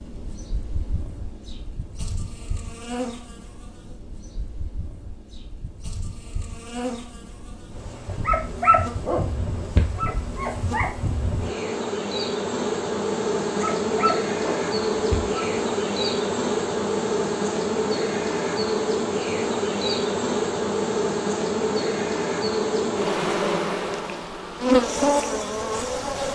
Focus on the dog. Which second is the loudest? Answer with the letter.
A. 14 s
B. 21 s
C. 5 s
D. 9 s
D.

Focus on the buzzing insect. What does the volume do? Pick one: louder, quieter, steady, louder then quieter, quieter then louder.
louder.